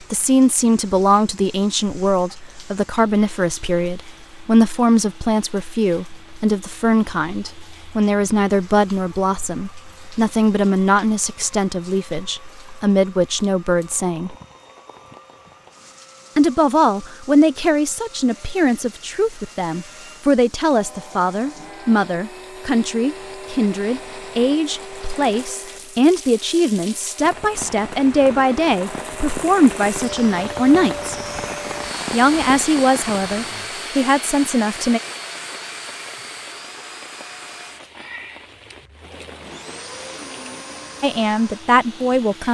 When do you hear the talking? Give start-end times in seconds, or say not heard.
0.1-14.3, 16.4-31.1, 32.1-35.0, 41.0-42.5.